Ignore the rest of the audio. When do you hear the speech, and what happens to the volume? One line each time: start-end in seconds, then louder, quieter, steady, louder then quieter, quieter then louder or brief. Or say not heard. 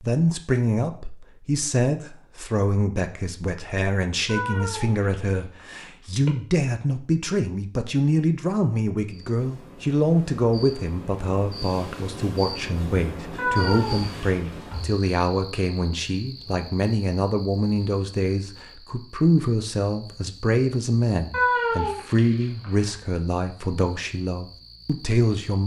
0.0-25.6 steady.